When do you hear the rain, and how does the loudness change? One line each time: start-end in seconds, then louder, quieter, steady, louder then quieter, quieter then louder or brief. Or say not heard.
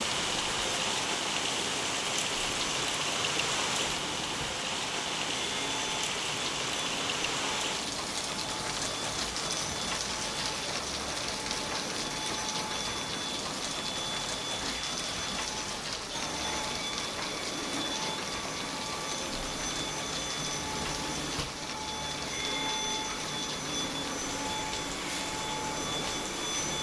0.0-26.7 quieter.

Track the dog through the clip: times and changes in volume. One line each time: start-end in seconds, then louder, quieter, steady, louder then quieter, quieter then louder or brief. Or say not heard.
not heard.